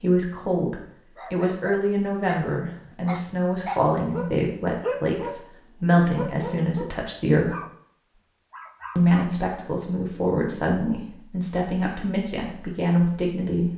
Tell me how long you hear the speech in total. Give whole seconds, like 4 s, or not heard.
12 s.